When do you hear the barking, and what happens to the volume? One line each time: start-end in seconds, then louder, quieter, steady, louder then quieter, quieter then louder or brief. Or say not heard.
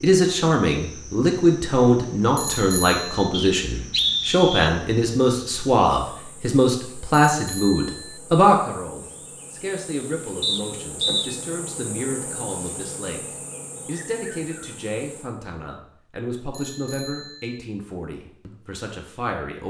not heard.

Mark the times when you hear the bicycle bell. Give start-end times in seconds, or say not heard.
2.4-3.3, 7.3-8.2, 16.5-17.6.